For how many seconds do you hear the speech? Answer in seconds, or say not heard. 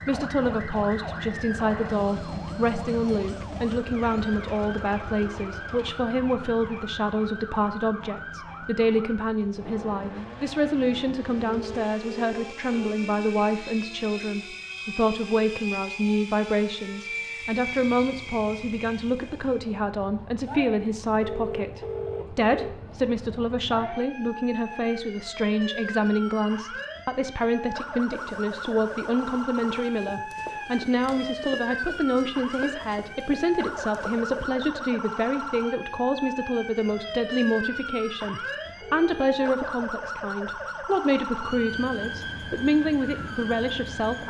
44 s.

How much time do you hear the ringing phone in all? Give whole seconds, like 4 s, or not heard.
4 s.